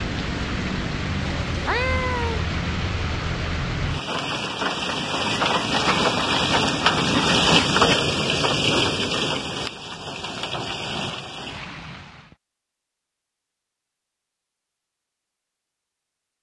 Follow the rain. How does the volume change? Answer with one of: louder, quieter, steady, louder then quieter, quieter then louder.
louder then quieter.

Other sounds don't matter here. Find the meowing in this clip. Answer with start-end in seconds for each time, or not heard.
1.2-2.5.